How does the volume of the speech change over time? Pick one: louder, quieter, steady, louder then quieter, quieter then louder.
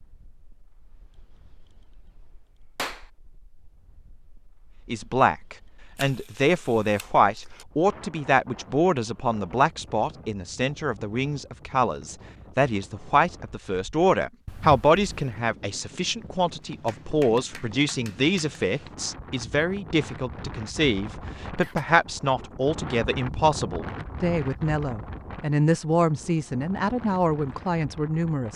steady.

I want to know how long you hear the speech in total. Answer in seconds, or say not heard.
24 s.